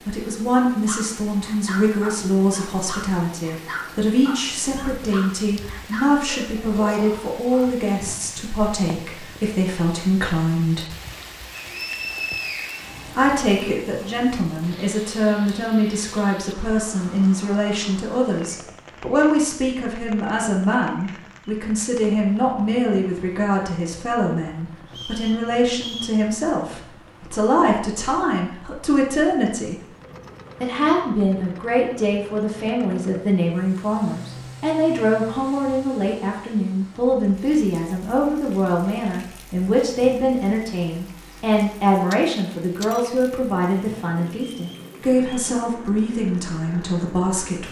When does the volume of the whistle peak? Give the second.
12 s.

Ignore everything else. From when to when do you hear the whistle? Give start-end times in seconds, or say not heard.
11.5-13.1, 24.9-26.2, 44.5-45.5.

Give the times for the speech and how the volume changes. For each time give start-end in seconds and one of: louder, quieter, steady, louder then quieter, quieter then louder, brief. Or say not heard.
0.1-10.8 steady
13.1-29.9 steady
30.6-47.6 steady.